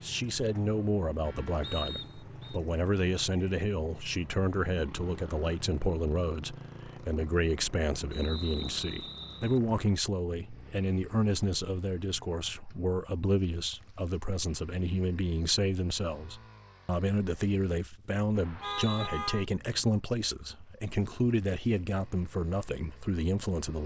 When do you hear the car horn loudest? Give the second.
19 s.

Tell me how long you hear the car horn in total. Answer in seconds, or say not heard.
2 s.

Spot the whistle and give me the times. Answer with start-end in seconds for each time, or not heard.
1.6-2.6, 8.1-9.6, 18.4-19.1.